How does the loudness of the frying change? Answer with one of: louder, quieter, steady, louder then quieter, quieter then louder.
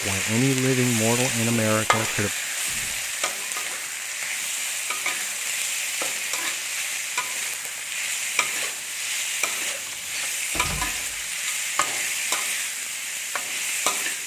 steady.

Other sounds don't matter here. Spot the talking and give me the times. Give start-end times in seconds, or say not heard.
0.0-2.3.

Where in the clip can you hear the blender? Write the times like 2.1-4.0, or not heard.
not heard.